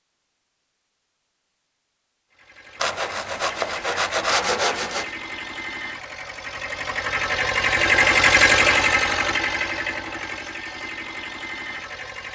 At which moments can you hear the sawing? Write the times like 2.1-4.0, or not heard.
2.8-5.1.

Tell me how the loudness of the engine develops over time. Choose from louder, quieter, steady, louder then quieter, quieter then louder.
louder then quieter.